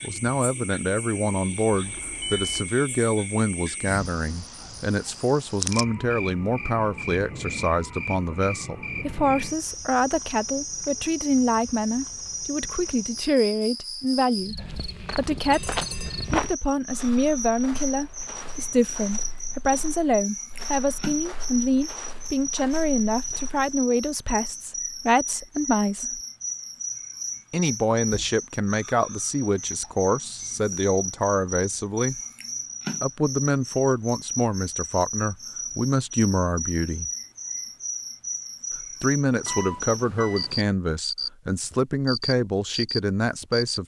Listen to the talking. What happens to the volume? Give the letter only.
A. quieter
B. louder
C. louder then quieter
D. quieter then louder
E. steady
E.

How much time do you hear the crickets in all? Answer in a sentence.
You can hear the crickets for 44 seconds altogether.